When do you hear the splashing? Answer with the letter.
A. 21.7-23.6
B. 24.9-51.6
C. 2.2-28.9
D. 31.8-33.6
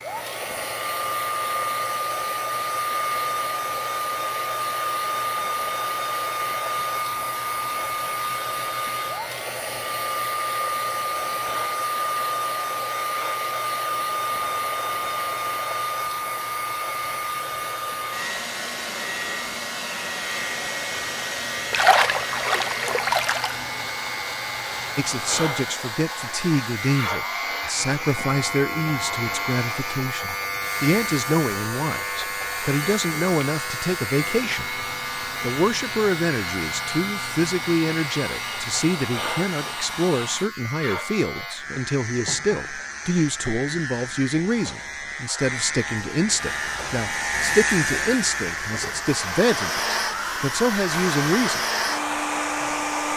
A.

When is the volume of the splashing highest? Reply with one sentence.
The loudest moment of the splashing is at 22 seconds.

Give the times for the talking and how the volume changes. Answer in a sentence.
You can hear the talking from 24.9 to 51.6 s, at a steady volume.